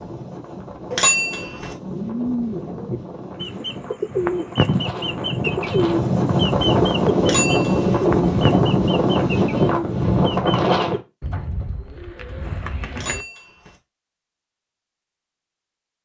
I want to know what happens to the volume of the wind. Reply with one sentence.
The volume of the wind goes up.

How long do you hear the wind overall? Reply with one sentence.
You can hear the wind for 11 seconds altogether.